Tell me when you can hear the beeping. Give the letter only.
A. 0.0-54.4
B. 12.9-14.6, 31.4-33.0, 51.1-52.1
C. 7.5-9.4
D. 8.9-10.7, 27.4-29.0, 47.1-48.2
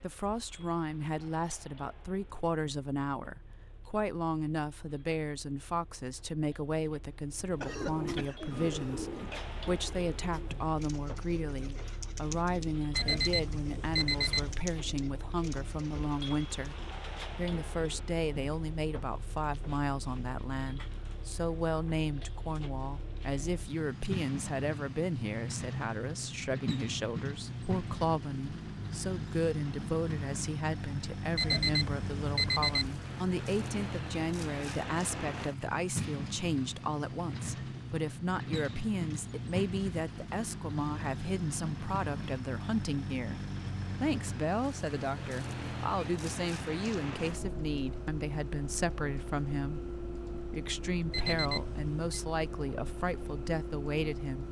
B.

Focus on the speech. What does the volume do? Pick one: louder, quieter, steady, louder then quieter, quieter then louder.
steady.